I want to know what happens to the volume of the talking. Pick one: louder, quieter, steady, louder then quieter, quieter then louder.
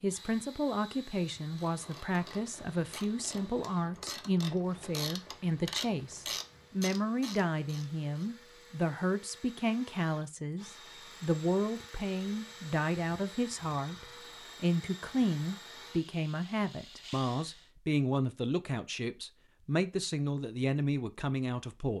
steady.